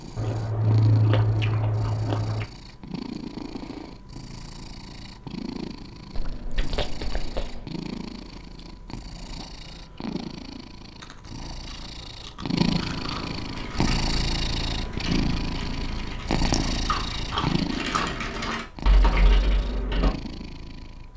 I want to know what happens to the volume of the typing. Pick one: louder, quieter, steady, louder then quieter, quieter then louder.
louder.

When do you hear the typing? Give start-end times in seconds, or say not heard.
13.4-20.1.